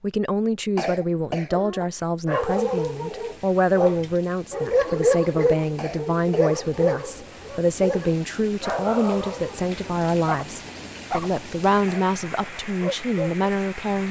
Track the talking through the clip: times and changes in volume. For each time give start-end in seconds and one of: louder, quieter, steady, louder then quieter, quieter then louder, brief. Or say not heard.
0.0-14.0 steady.